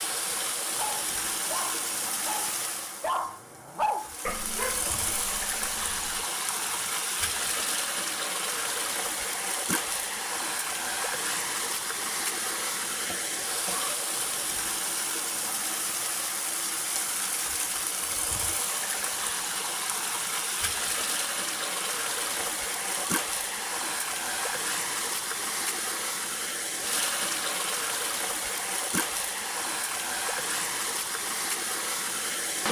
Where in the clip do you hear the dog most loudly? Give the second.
4 s.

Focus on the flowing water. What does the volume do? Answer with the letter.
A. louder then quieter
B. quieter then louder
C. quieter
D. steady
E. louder
D.